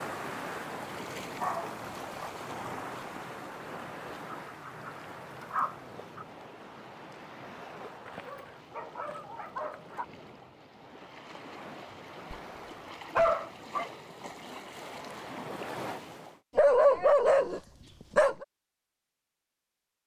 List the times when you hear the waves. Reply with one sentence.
You can hear the waves from 0.0 to 16.4 s.